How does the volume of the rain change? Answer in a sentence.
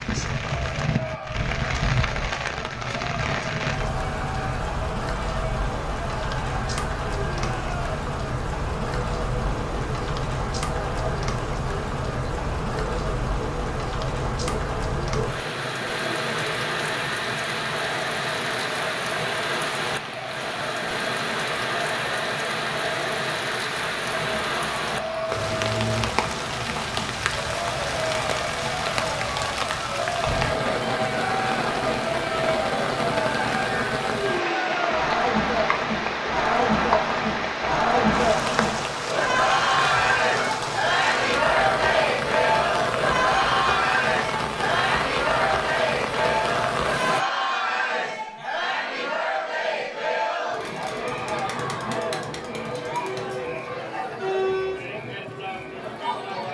The volume of the rain stays about the same.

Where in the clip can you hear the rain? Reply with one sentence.
The rain can be heard from 0.0 to 47.2 s.